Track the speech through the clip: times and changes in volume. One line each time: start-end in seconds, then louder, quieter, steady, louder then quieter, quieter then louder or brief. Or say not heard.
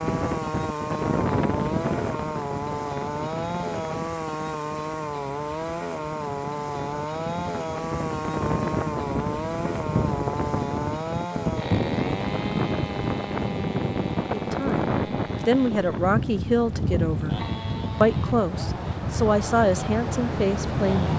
14.3-21.1 steady.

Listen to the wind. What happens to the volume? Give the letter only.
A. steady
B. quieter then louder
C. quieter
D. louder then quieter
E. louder
B.